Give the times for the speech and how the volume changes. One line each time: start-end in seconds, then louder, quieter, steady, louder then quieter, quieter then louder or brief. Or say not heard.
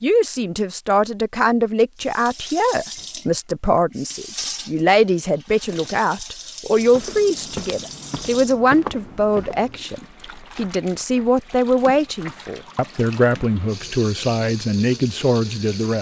0.0-15.9 steady.